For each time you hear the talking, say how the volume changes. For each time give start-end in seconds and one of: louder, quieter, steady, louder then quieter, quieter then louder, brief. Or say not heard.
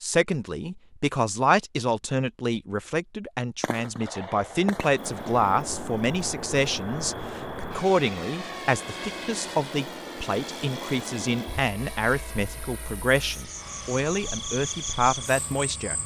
0.0-15.9 steady.